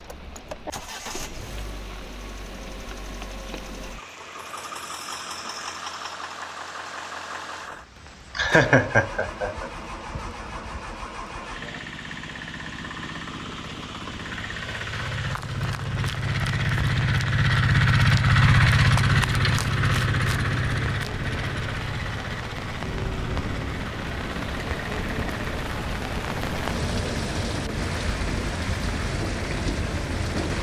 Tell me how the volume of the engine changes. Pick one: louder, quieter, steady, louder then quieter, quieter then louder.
louder then quieter.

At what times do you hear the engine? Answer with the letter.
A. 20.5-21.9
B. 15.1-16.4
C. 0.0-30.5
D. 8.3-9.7
C.